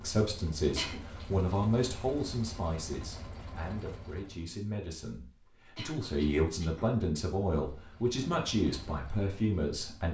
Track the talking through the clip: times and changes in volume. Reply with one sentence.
You can hear the talking from 0.0 to 10.0 s, getting quieter then louder.